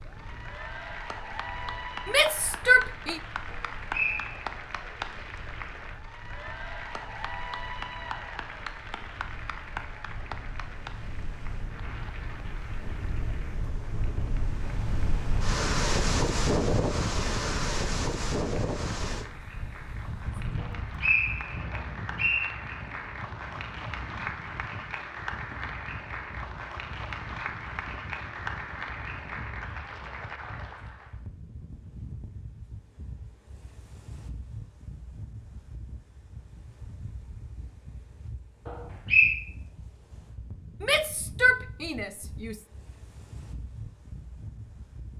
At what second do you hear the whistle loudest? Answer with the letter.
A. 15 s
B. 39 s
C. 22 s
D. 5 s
B.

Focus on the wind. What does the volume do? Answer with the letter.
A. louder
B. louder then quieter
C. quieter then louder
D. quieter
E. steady
B.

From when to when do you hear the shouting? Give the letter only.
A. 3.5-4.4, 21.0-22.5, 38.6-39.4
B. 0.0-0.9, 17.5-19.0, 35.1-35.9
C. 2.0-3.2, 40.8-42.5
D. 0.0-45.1
C.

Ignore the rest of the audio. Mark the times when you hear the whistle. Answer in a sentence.
The whistle can be heard from 3.5 to 4.4 s, from 21.0 to 22.5 s and from 38.6 to 39.4 s.